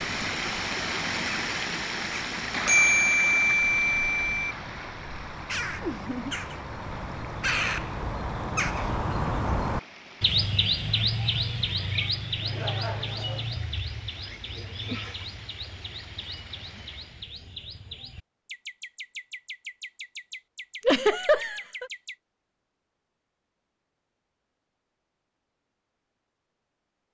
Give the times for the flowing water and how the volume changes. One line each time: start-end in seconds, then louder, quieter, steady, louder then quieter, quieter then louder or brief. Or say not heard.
0.0-17.4 quieter.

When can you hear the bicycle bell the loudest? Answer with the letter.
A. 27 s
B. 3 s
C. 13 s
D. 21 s
B.